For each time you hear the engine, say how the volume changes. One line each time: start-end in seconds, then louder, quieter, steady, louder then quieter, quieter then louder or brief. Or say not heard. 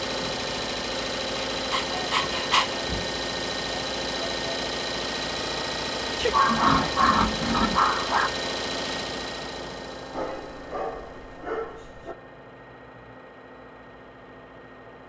0.0-15.0 quieter.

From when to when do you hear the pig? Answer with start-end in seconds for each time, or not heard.
6.2-7.8.